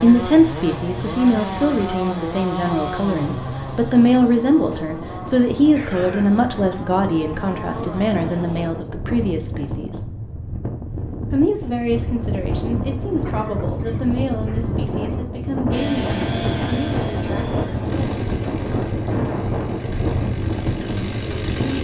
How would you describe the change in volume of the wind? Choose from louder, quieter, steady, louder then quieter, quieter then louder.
louder.